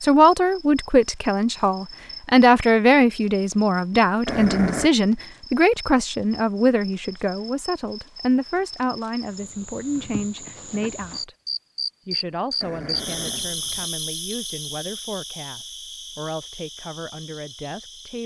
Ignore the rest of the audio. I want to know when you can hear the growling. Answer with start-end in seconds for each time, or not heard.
4.2-4.9, 12.6-13.9.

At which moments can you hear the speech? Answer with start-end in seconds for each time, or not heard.
0.0-11.3, 12.1-18.2.